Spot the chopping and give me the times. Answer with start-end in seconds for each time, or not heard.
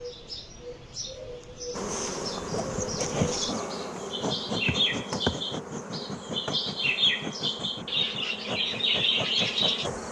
not heard.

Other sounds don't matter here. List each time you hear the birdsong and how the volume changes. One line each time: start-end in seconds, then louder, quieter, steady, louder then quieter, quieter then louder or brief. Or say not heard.
0.0-9.9 louder.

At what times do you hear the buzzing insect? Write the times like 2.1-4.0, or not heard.
1.7-10.0.